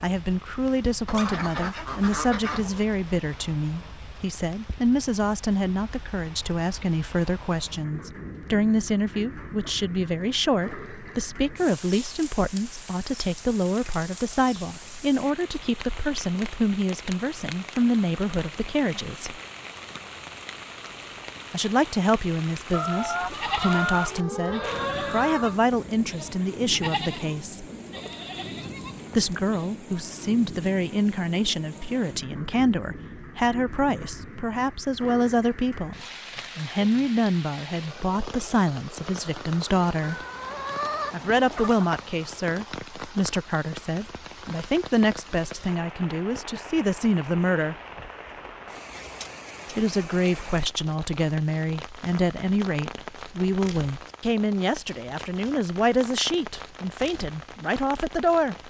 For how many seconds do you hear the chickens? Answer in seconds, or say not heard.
7 s.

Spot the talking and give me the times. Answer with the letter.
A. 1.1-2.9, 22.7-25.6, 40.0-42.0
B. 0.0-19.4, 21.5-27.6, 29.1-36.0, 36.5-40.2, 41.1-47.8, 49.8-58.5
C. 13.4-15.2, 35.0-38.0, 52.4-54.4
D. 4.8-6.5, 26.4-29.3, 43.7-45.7
B.